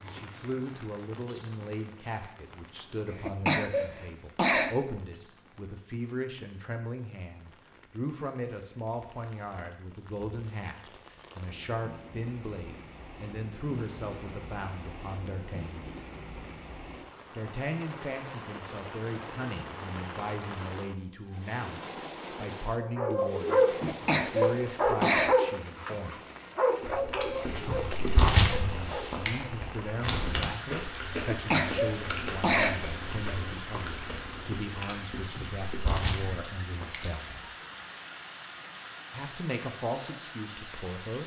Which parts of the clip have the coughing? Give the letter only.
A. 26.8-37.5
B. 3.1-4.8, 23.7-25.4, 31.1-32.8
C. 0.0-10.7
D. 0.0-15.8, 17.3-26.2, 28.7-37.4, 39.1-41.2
B.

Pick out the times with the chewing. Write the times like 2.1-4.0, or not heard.
26.8-37.5.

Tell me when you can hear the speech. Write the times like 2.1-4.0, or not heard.
0.0-15.8, 17.3-26.2, 28.7-37.4, 39.1-41.2.